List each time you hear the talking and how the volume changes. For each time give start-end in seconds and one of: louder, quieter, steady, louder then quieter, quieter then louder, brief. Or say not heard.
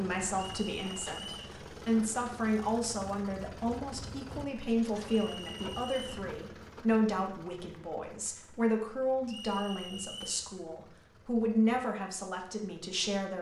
0.0-13.3 steady.